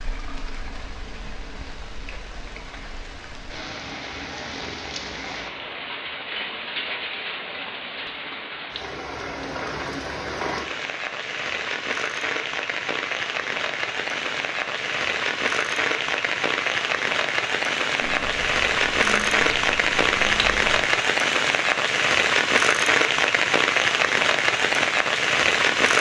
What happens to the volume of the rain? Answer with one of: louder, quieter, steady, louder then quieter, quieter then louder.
louder.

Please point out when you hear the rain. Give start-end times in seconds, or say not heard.
0.0-25.9.